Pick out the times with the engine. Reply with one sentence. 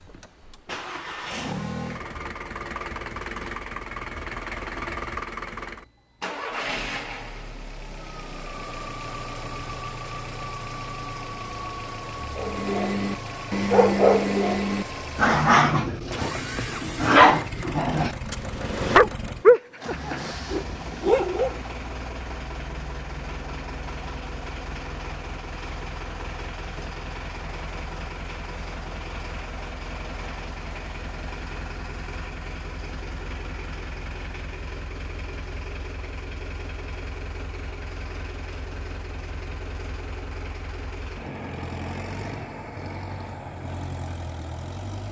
You can hear the engine from 0.0 to 45.0 s.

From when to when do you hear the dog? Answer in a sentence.
The dog can be heard from 12.3 to 21.6 s.